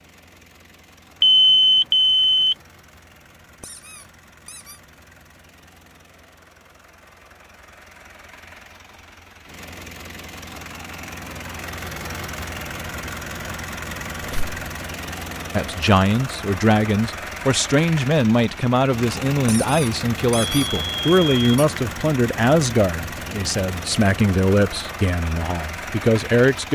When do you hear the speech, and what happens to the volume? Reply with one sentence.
You can hear the speech from 15.6 to 26.6 s, at a steady volume.